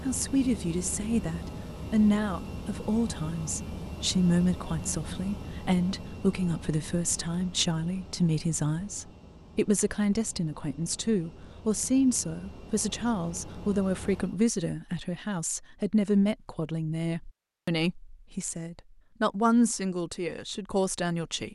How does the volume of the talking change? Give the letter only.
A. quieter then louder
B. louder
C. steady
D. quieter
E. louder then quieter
C.